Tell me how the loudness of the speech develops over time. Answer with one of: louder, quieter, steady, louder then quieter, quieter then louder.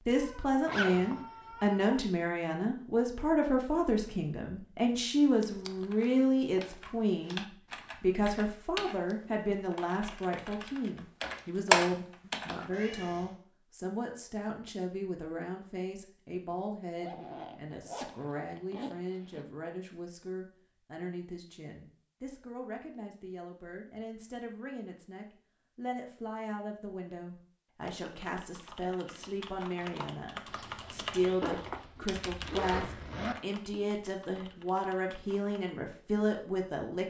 quieter then louder.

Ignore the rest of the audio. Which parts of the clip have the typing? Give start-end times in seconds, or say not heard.
5.4-12.7, 27.8-35.5.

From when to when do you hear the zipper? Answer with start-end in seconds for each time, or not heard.
0.7-1.2, 17.0-19.4, 31.4-33.4.